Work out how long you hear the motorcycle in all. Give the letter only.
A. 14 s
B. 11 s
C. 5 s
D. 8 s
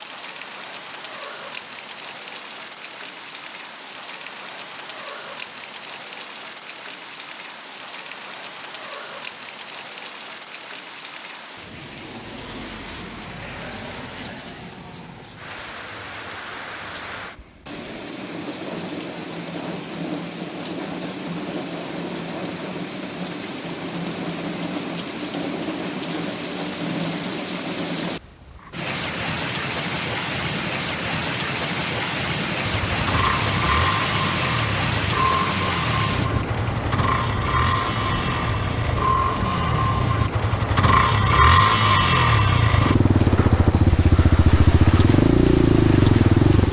A.